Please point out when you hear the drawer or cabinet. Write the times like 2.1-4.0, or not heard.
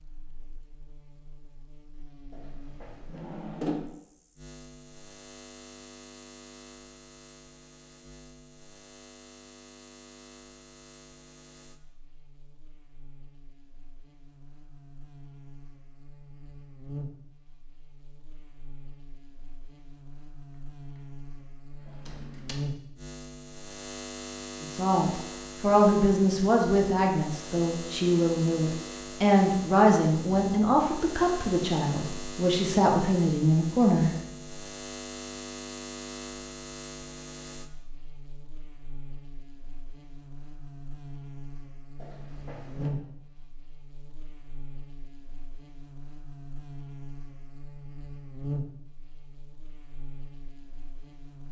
2.3-3.8, 21.9-22.6, 42.0-42.9.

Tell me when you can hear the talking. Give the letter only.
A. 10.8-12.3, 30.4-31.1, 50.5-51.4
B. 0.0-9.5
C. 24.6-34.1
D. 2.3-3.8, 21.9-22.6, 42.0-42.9
C.